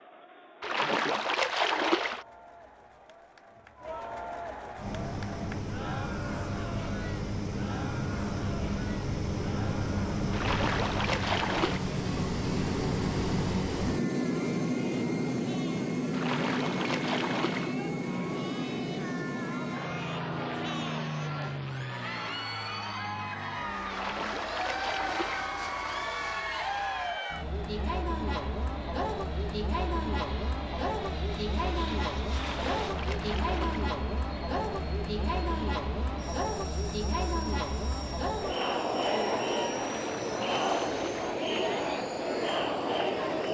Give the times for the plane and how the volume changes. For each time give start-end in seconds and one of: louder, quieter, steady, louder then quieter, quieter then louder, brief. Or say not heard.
4.8-43.4 quieter.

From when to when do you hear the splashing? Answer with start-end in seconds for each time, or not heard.
0.6-2.2, 10.3-11.8, 16.1-17.8, 23.9-25.5, 32.3-34.0, 39.8-41.3.